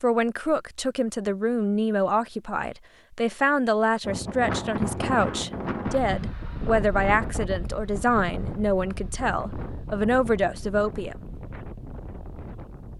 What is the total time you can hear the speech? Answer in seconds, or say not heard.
11 s.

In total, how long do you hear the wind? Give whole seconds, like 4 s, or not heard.
9 s.